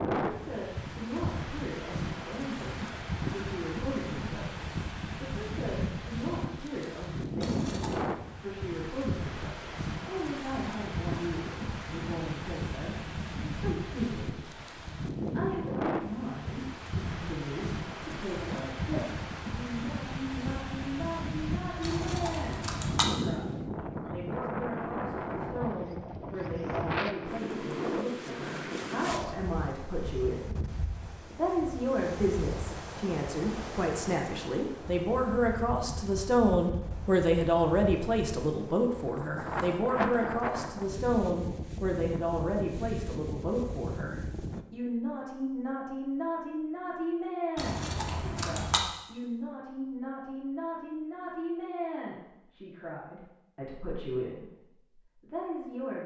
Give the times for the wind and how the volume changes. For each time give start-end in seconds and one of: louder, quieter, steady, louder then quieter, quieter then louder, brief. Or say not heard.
0.0-44.6 steady.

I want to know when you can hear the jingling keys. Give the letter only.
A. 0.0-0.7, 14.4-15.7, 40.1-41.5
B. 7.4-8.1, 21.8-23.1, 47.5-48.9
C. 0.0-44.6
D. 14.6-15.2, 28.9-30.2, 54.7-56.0
B.